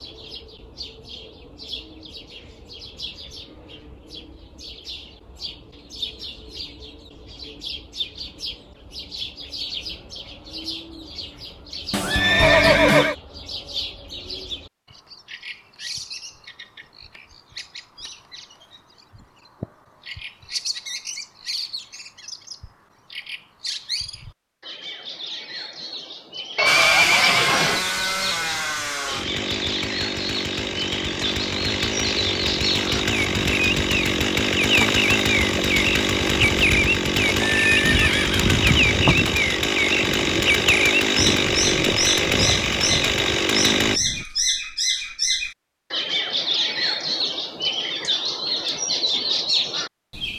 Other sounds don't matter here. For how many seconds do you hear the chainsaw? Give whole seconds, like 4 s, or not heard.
17 s.